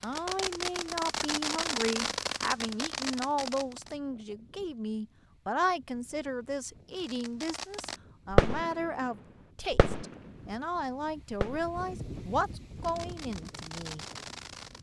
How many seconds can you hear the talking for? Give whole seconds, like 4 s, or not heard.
14 s.